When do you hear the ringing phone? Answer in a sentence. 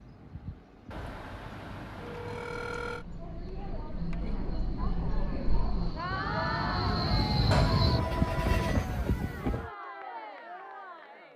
The ringing phone can be heard from 0.9 to 3.0 s and from 7.5 to 8.8 s.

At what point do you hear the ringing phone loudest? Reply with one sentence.
The loudest moment of the ringing phone is at 8 seconds.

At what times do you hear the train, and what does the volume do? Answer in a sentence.
The train can be heard from 0.0 to 9.7 s, getting louder.